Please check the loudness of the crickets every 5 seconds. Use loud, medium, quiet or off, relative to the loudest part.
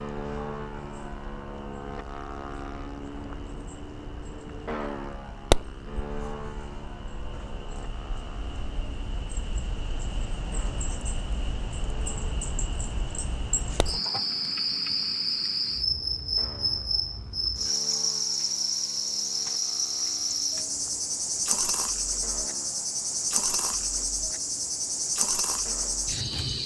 quiet, quiet, medium, loud, loud, loud.